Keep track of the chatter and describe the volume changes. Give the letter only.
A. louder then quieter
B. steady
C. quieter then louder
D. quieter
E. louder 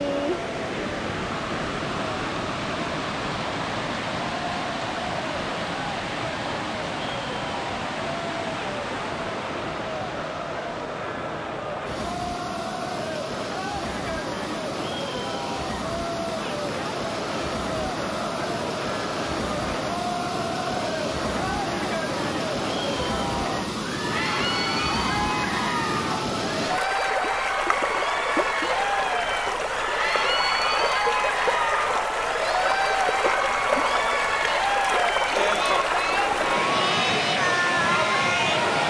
E.